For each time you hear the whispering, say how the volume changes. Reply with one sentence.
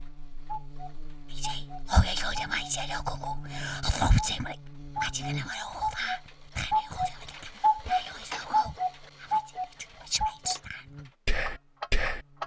You can hear the whispering from 1.4 to 12.2 s, getting quieter then louder.